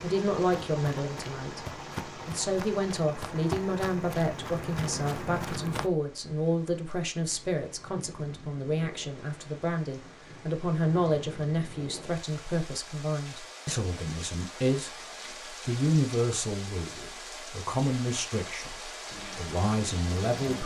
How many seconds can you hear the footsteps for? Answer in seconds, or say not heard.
6 s.